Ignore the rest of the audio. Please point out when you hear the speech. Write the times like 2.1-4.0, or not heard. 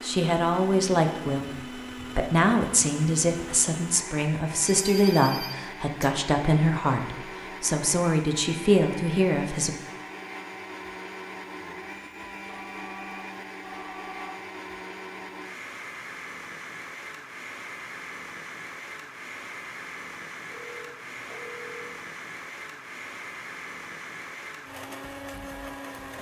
0.0-1.5, 2.1-9.8.